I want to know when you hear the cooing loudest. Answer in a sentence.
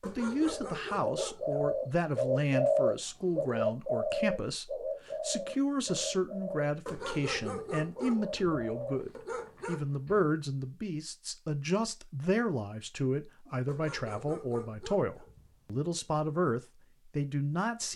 The volume of the cooing peaks at 3 seconds.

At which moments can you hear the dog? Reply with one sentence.
The dog can be heard from 0.0 to 1.8 s, from 6.8 to 9.8 s and from 13.7 to 16.1 s.